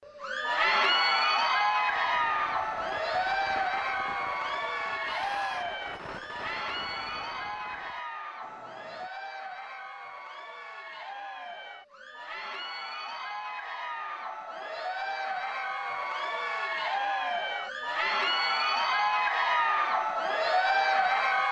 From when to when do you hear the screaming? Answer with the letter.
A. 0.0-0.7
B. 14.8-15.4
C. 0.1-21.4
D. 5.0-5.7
D.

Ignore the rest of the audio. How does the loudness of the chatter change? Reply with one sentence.
The volume of the chatter goes down, then up.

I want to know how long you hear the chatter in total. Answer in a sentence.
You can hear the chatter for 21 seconds altogether.